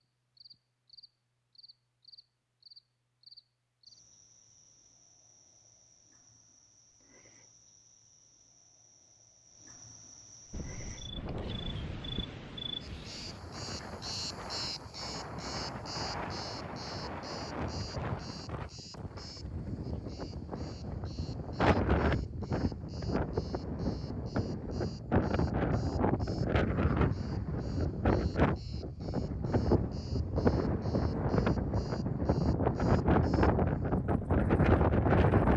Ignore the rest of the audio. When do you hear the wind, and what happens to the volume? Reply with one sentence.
You can hear the wind from 10.5 to 35.5 s, getting louder.